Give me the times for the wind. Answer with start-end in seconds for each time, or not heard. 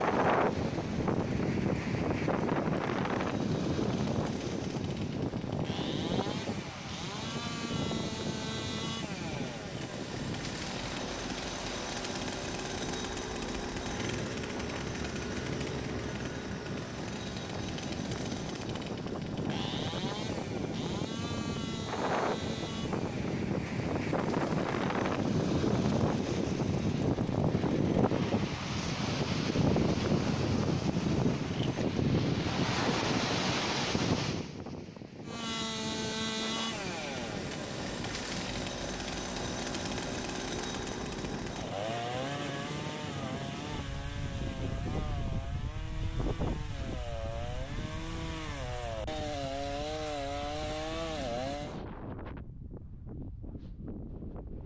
0.0-54.6.